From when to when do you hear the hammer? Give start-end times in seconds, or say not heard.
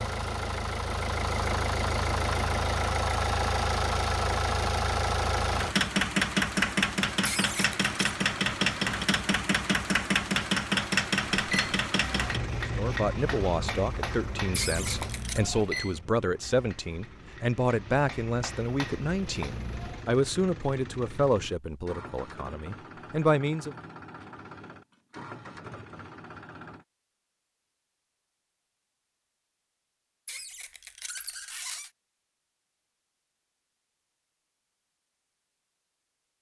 11.4-20.1.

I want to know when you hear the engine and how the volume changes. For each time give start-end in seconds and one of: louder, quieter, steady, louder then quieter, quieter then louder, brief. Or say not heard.
0.0-26.9 quieter.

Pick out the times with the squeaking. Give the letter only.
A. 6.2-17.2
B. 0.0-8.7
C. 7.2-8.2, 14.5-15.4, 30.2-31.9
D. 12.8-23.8
C.